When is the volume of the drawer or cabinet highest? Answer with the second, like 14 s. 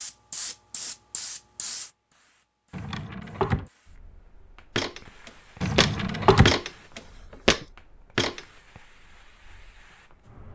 6 s.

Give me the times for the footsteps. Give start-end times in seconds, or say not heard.
4.8-8.4.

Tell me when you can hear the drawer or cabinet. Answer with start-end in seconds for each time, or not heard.
2.7-3.7, 5.6-6.5.